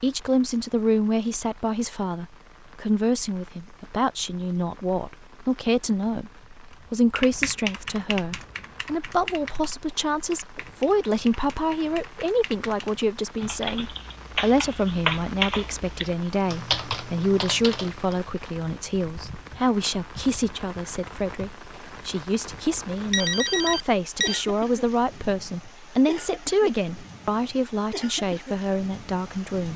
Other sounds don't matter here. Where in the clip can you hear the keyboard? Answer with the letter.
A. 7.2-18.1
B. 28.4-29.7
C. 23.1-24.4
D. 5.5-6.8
A.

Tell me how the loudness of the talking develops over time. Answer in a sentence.
The volume of the talking stays about the same.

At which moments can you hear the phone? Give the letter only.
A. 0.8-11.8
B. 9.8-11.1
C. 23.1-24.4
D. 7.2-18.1
C.